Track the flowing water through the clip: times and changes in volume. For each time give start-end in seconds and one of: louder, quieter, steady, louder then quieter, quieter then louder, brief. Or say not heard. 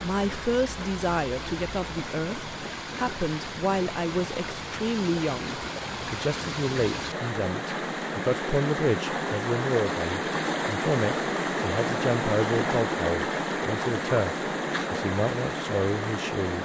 0.0-16.5 louder.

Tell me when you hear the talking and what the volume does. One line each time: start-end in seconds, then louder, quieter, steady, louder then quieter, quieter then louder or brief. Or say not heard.
0.0-16.5 steady.